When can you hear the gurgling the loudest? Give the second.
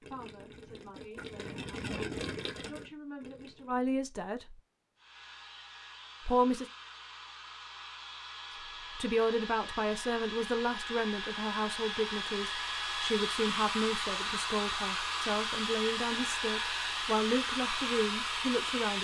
2 s.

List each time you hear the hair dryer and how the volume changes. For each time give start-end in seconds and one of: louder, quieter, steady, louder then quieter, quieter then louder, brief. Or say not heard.
5.0-19.0 louder.